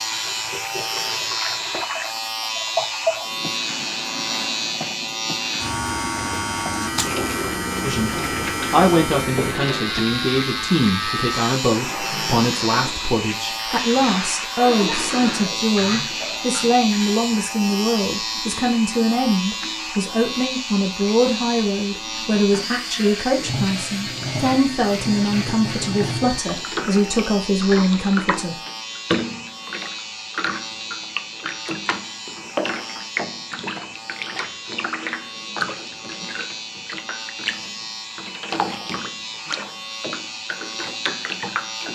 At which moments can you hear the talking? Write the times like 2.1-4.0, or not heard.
7.8-28.6.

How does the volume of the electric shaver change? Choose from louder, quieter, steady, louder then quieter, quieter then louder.
quieter.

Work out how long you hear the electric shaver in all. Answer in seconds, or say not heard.
42 s.